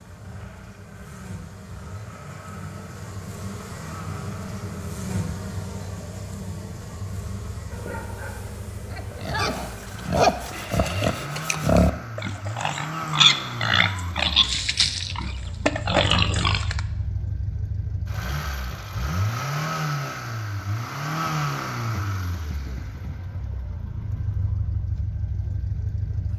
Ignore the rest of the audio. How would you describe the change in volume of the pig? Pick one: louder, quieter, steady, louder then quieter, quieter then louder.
steady.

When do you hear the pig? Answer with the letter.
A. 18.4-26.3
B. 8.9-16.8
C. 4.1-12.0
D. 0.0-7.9
B.